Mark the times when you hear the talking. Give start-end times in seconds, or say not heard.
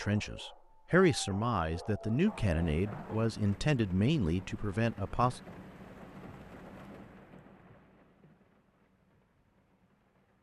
0.0-5.4.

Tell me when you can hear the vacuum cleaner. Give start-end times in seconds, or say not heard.
not heard.